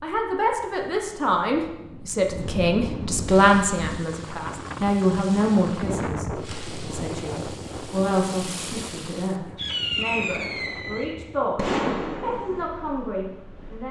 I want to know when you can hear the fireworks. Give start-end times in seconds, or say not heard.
3.2-12.7.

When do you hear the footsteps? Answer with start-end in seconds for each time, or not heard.
not heard.